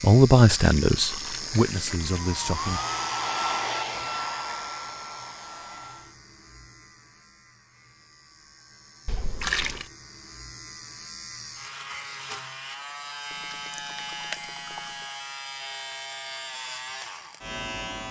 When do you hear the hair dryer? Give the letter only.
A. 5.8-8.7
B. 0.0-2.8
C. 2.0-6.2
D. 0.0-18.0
C.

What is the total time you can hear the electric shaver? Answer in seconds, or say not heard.
18 s.